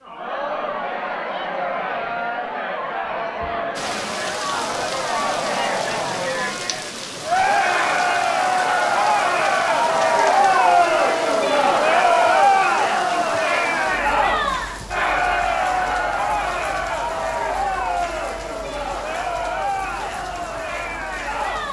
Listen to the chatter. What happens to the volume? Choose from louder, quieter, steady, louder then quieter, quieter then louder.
louder then quieter.